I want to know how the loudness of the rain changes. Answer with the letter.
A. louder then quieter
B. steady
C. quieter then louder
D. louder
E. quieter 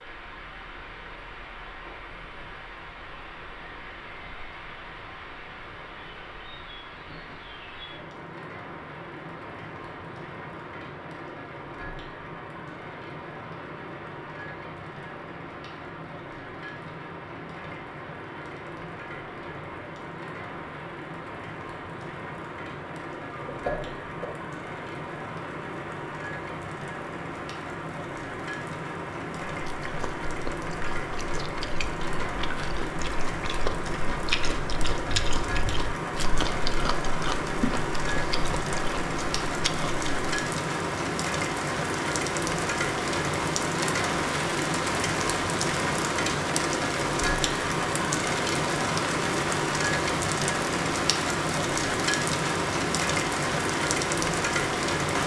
D.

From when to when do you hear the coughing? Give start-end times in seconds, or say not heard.
23.3-24.3.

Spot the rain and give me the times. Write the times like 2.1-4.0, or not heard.
0.0-55.2.